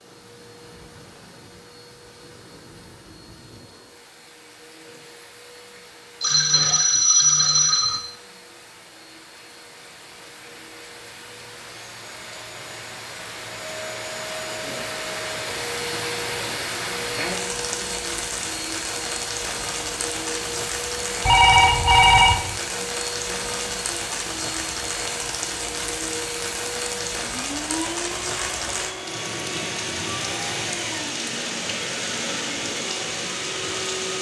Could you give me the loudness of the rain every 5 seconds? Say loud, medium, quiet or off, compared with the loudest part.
quiet, quiet, medium, loud, loud, loud, loud.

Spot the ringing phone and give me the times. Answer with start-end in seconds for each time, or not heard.
6.2-8.0, 21.2-22.5.